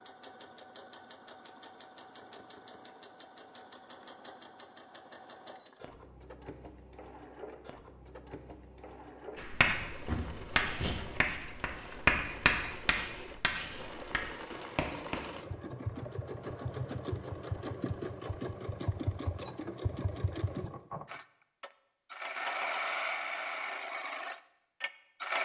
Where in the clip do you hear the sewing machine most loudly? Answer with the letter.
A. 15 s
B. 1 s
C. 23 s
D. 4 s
C.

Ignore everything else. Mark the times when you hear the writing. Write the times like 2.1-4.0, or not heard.
9.3-15.3.